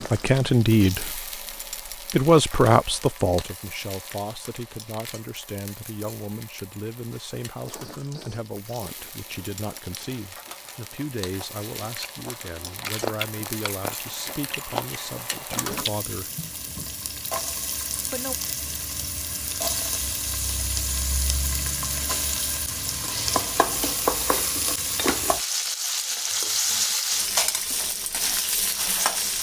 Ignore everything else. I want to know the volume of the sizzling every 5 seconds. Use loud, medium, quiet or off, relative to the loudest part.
quiet, quiet, quiet, medium, loud, loud.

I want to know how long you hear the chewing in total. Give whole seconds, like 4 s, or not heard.
9 s.